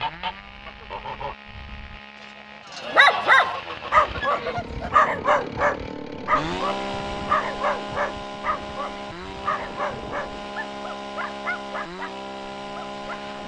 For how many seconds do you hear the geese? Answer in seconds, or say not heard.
5 s.